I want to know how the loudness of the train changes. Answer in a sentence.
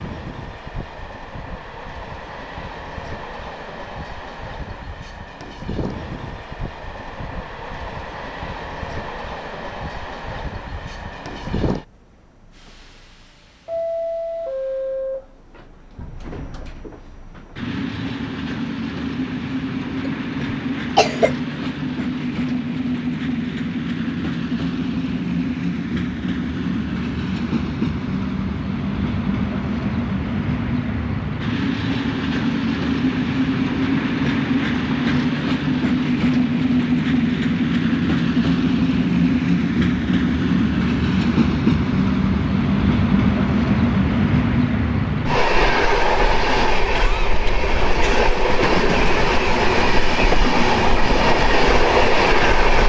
The loudness of the train goes up.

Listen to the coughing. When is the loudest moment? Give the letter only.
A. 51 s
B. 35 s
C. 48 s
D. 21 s
D.